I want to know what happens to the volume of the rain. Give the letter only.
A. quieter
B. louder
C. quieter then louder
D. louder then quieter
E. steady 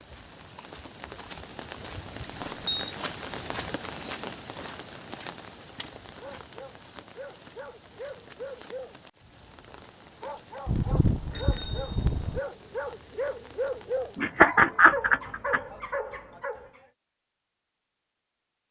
A.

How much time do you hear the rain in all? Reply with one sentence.
The rain can be heard for 14 seconds in total.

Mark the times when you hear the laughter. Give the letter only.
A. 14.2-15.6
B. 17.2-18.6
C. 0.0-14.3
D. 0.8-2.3
A.